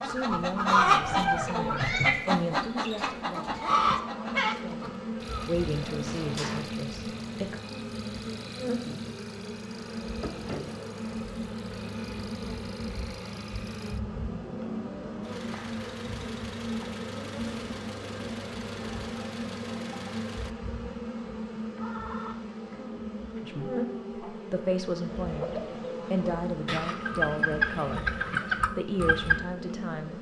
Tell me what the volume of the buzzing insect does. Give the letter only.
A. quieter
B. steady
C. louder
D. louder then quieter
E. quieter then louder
B.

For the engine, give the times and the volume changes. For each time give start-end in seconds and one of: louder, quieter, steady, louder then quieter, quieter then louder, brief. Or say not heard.
5.2-20.6 steady.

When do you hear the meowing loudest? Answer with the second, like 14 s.
2 s.